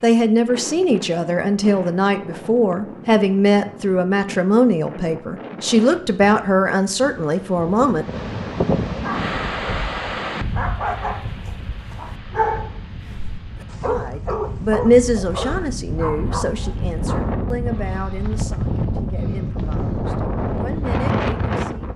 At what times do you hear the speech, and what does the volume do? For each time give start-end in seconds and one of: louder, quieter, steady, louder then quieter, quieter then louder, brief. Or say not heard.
0.0-8.1 steady
13.8-21.9 quieter then louder.